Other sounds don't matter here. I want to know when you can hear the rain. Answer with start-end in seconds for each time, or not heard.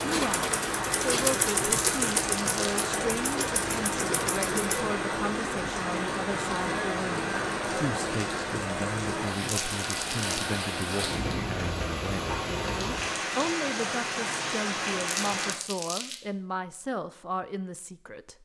0.0-15.6.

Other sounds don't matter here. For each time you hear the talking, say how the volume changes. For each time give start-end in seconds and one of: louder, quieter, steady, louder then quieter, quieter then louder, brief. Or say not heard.
0.0-18.3 steady.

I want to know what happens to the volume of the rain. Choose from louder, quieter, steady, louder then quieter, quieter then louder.
steady.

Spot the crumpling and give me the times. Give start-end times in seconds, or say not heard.
1.8-2.9, 9.4-10.6, 15.1-16.2.